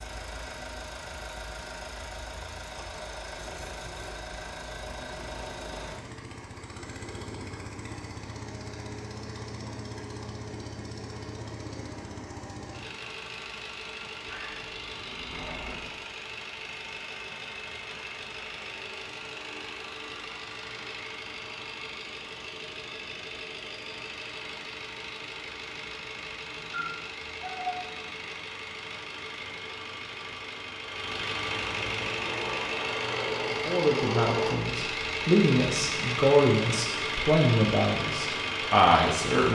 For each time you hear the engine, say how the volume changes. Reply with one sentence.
You can hear the engine from 0.0 to 39.5 s, getting louder.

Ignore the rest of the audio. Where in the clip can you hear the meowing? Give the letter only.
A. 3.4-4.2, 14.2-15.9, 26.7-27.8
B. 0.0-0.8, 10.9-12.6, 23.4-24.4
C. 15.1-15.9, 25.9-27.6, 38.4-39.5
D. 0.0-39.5
A.